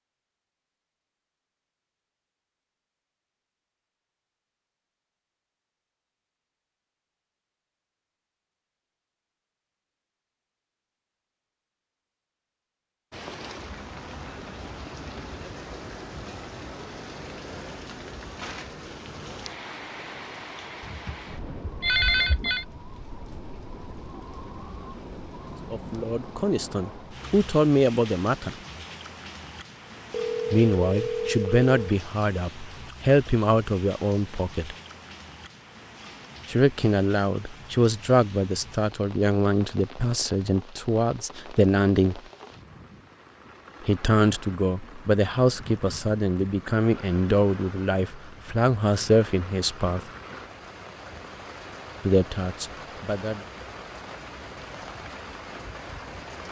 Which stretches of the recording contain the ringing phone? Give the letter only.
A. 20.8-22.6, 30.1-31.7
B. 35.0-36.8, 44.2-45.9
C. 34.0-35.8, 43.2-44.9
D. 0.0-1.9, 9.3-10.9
A.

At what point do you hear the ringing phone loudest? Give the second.
22 s.